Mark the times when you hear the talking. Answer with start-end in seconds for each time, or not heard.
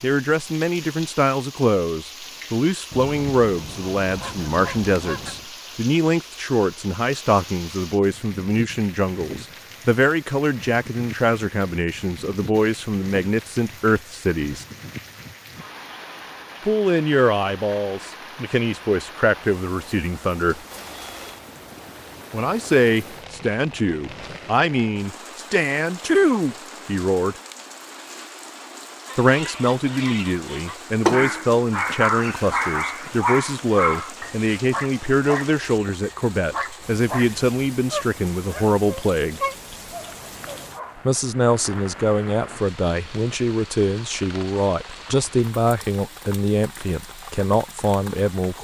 0.0-14.7, 16.6-20.6, 22.3-27.4, 29.1-39.4, 41.0-48.5.